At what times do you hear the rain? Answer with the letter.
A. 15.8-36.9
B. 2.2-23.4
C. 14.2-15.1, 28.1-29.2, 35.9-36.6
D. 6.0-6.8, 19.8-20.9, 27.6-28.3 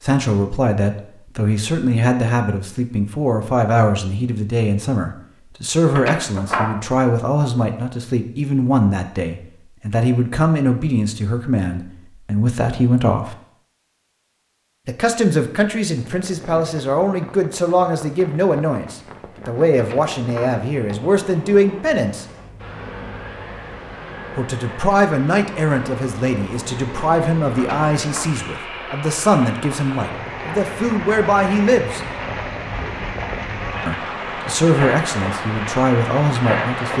A.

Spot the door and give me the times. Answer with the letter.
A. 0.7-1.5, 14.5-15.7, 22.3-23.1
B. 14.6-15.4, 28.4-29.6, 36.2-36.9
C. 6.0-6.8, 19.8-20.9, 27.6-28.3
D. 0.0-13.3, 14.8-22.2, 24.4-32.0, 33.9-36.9
C.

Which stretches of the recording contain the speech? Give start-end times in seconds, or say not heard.
0.0-13.3, 14.8-22.2, 24.4-32.0, 33.9-36.9.